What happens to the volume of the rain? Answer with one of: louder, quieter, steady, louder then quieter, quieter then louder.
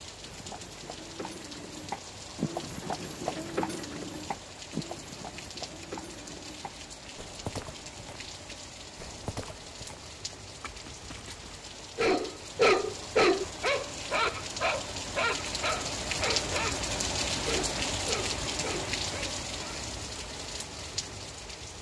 louder.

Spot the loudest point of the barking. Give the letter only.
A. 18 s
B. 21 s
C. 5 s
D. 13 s
D.